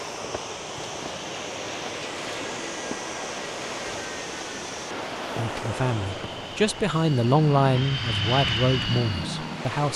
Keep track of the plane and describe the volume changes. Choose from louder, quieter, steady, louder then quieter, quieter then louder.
louder.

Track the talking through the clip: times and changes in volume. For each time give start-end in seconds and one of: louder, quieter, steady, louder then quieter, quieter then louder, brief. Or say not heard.
5.3-9.9 louder then quieter.